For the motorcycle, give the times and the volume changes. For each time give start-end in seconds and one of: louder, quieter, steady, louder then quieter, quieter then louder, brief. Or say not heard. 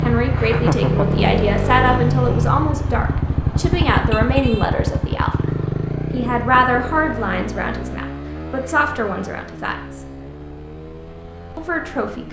0.0-12.2 quieter.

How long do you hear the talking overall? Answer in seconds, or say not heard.
10 s.